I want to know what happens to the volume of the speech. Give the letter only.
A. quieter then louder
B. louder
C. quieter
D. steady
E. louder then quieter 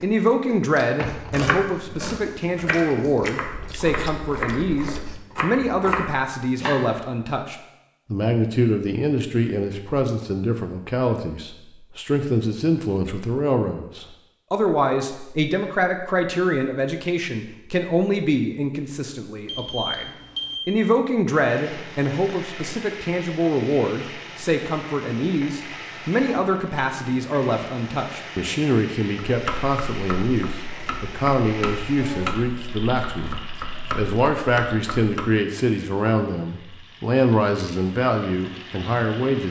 D.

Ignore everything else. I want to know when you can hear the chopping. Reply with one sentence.
You can hear the chopping from 1.0 to 6.9 s and from 29.2 to 35.3 s.